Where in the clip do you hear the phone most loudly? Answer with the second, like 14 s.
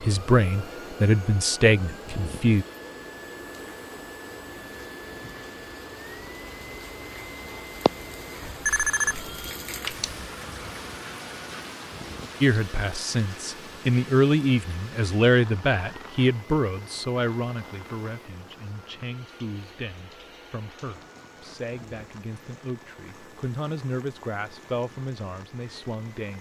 9 s.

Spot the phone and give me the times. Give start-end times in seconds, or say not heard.
8.4-10.2.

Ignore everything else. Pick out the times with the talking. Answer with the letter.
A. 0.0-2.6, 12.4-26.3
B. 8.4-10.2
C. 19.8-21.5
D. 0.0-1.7
A.